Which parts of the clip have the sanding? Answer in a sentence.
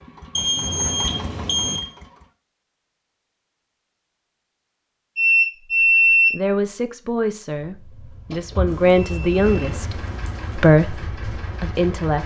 You can't hear the sanding here.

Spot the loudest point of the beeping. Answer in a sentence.
The loudest moment of the beeping is at 6 seconds.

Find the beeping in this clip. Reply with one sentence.
The beeping can be heard from 0.3 to 1.8 s, from 5.2 to 6.3 s and from 8.7 to 10.7 s.